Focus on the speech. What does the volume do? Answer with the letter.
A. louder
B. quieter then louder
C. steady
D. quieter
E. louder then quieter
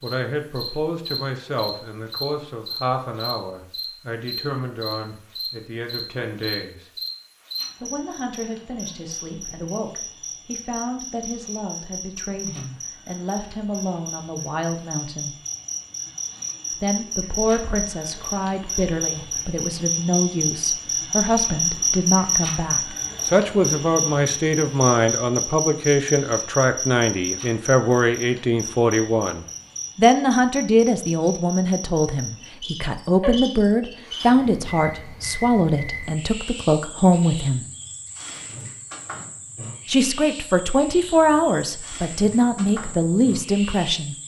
A.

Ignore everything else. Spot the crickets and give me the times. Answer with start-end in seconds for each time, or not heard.
0.0-44.2.